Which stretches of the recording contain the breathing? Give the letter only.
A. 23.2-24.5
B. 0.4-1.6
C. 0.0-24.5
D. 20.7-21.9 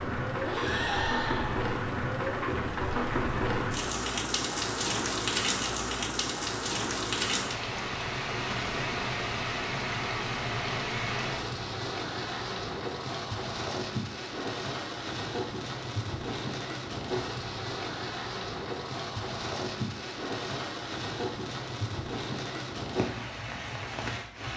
B.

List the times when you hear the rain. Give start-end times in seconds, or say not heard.
0.0-24.5.